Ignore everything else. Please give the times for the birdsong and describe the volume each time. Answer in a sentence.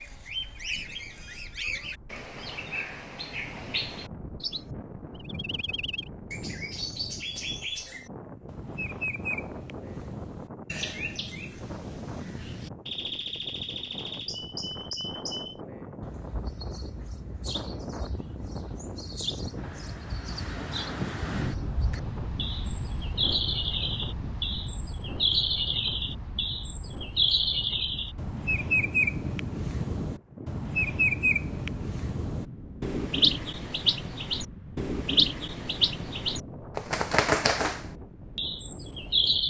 You can hear the birdsong from 0.0 to 39.4 s, getting louder.